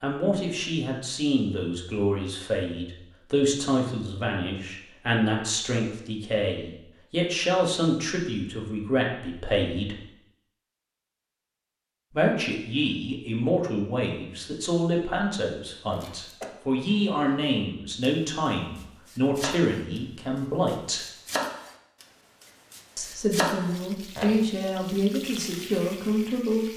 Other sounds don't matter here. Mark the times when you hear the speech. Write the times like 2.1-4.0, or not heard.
0.0-10.0, 12.1-21.0, 22.9-26.7.